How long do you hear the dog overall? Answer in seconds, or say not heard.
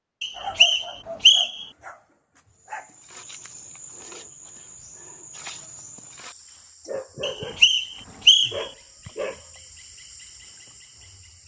5 s.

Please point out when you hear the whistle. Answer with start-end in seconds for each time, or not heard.
0.2-1.6, 7.2-8.7.